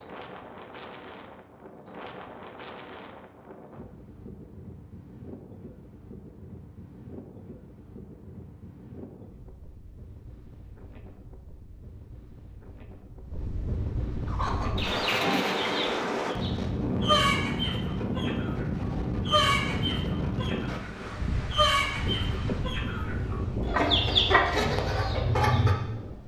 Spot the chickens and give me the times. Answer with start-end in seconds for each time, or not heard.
14.2-25.8.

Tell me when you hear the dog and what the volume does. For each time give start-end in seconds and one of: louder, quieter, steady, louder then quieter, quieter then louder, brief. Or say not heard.
not heard.